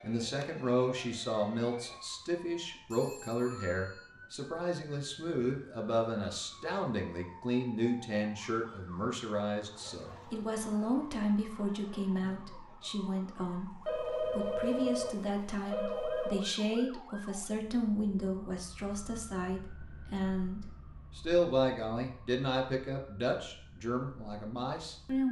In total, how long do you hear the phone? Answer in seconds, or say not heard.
4 s.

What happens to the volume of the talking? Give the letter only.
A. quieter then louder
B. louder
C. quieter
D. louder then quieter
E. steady
E.